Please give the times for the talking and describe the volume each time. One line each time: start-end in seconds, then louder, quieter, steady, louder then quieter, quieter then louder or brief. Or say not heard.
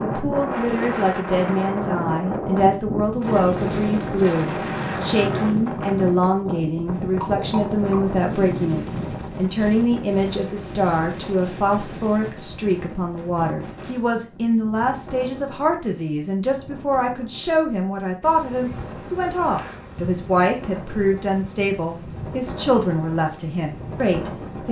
0.0-24.6 steady.